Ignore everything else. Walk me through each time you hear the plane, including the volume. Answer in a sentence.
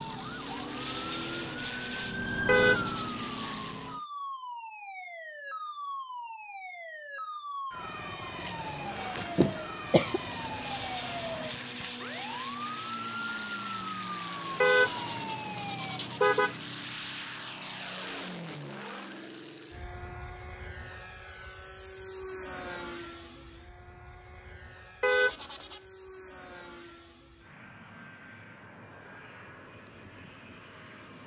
The plane can be heard from 0.0 to 4.0 s, getting quieter then louder; and from 8.3 to 31.2 s, getting quieter.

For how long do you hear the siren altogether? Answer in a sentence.
The siren can be heard for 16 seconds in total.